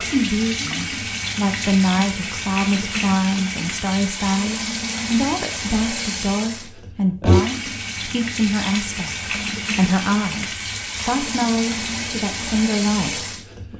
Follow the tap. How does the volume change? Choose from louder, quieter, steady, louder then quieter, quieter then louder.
steady.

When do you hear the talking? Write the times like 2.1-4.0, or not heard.
0.0-13.7.